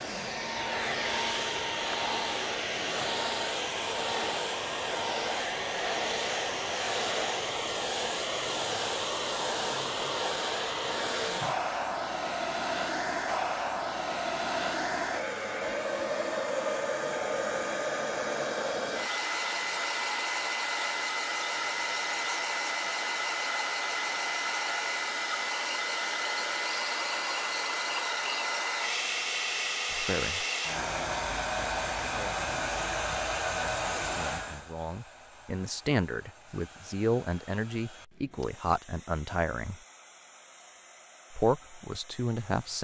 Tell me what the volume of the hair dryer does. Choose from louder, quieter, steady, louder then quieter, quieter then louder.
quieter.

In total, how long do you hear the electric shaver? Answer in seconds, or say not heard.
not heard.